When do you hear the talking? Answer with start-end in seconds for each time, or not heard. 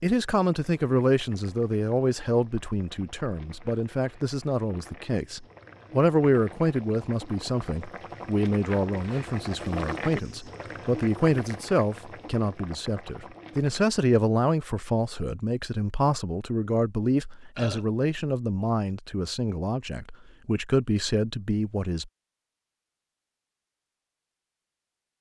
0.0-22.1.